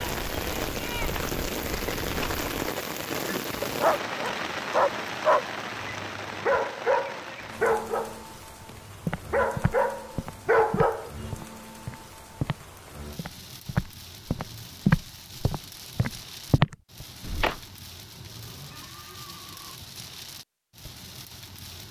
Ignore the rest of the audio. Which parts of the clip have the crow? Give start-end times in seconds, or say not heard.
not heard.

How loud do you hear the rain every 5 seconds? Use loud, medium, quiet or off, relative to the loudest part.
loud, medium, quiet, quiet, quiet.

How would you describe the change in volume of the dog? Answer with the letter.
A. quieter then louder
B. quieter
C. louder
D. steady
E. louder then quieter
A.